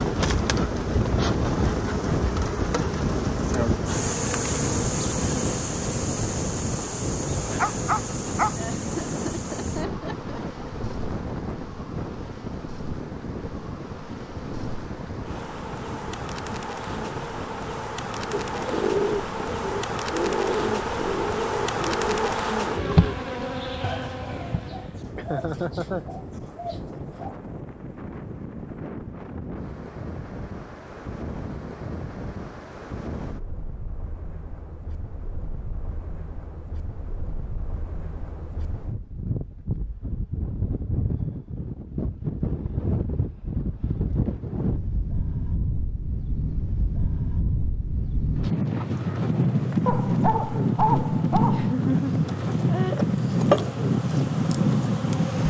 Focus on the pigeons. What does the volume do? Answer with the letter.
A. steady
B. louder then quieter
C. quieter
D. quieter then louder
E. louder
C.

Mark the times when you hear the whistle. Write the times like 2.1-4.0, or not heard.
not heard.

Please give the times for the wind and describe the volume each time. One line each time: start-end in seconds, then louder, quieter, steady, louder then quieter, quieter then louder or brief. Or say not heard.
0.0-55.4 quieter then louder.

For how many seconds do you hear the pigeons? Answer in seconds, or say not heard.
9 s.